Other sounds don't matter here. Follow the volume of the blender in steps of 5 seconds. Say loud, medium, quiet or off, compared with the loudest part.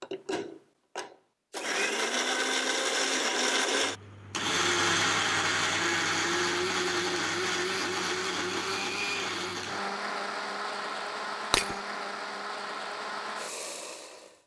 loud, loud, medium.